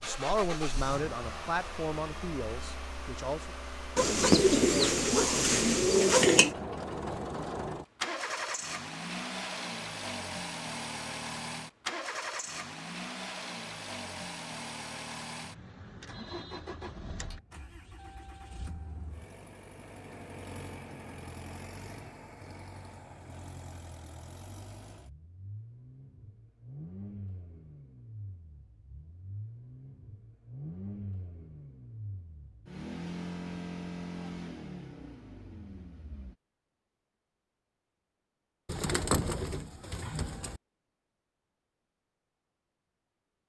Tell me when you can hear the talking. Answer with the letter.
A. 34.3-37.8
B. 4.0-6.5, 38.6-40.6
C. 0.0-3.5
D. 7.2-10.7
C.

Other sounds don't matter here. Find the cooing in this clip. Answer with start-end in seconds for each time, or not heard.
4.0-6.5, 38.6-40.6.